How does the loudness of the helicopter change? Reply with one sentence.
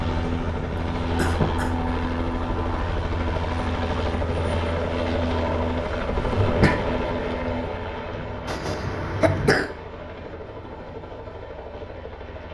The volume of the helicopter goes down.